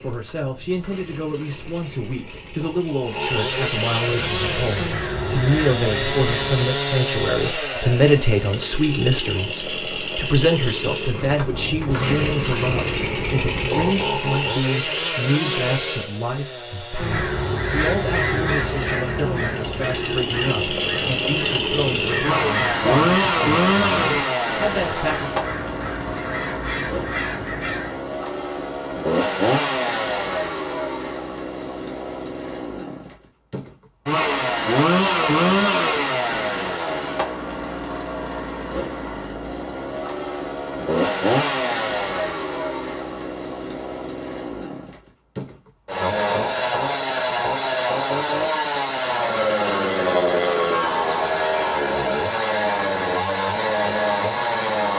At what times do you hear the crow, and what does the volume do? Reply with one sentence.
The crow can be heard briefly from 4.0 to 6.7 s; and from 16.9 to 28.0 s, getting quieter.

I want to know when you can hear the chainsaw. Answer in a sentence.
The chainsaw can be heard from 0.0 to 54.9 s.